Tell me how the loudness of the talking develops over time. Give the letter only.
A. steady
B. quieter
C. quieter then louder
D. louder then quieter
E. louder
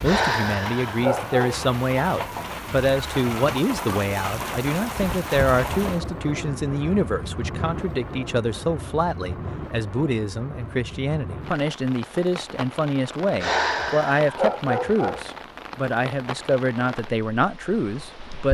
A.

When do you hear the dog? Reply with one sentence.
You can hear the dog from 0.0 to 1.6 s and from 13.4 to 15.2 s.